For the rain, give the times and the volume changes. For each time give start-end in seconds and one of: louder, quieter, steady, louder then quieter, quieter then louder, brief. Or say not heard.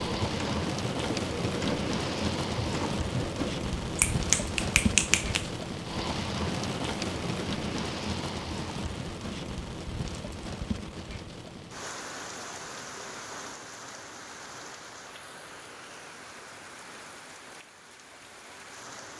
0.0-19.1 quieter.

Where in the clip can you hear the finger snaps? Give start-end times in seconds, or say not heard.
4.0-5.5.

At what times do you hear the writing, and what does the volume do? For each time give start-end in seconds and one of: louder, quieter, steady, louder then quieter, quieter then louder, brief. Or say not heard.
not heard.